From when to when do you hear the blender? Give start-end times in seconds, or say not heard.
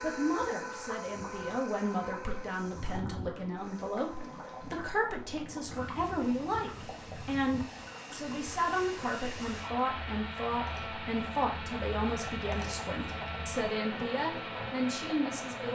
0.0-15.7.